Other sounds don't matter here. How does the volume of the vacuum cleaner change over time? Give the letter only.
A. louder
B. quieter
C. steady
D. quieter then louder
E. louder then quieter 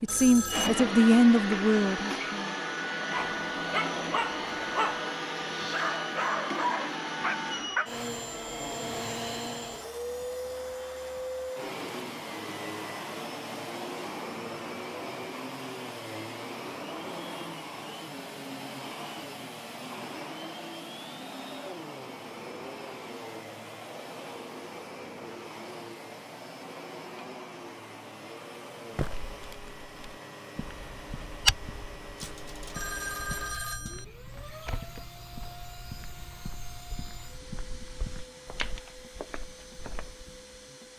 B.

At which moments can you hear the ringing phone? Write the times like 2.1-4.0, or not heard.
0.1-0.9, 32.1-34.0.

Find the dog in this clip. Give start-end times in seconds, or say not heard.
3.1-8.1.